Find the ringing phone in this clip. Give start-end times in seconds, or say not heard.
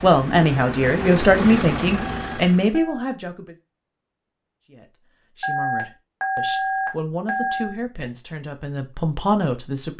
1.9-3.1, 5.4-7.8.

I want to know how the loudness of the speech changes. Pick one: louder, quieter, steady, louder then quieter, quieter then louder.
quieter then louder.